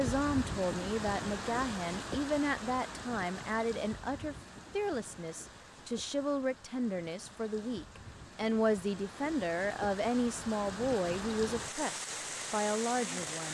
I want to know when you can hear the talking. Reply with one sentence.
The talking can be heard from 0.0 to 13.4 s.